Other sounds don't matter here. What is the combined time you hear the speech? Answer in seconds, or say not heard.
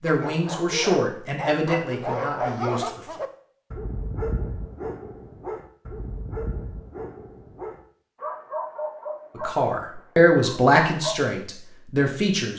6 s.